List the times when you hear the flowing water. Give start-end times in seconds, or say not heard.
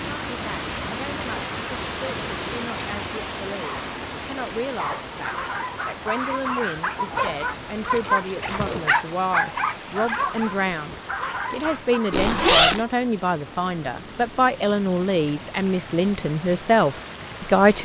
0.0-17.8.